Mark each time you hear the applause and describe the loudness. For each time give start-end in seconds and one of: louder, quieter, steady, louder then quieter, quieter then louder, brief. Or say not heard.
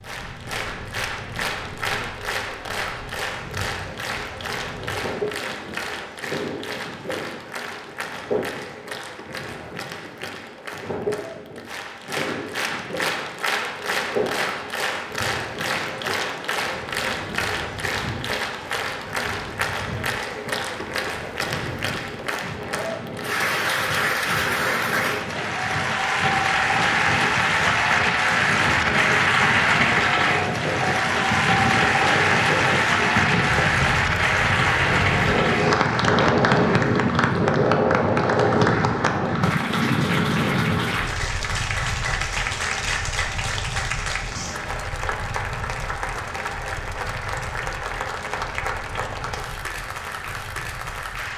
0.0-51.3 louder then quieter.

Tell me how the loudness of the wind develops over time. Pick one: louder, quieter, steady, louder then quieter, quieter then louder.
louder then quieter.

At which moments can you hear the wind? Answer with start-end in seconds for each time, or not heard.
0.0-51.3.